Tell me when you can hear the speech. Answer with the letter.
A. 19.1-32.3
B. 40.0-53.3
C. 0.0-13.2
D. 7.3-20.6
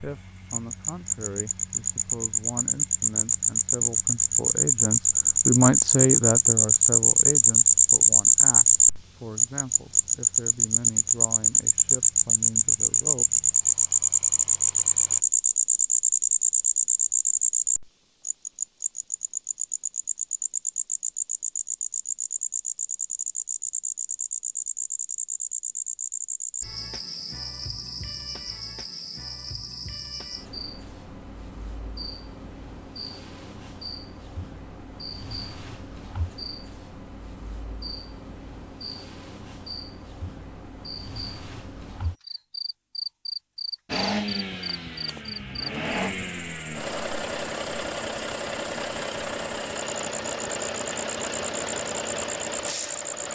C.